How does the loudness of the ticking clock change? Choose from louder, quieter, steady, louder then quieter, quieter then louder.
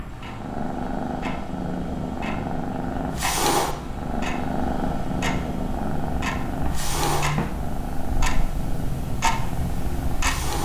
louder.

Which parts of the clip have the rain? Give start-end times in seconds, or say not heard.
not heard.